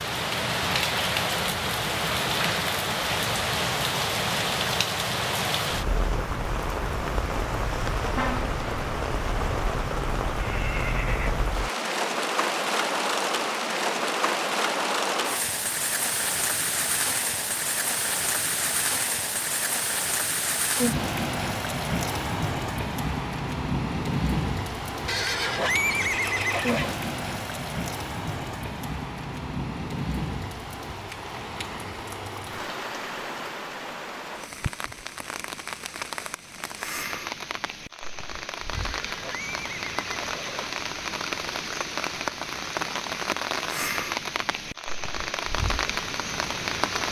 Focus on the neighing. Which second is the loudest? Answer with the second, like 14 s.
26 s.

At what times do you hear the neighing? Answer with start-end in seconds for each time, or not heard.
10.3-11.3, 25.1-26.9, 38.7-40.8.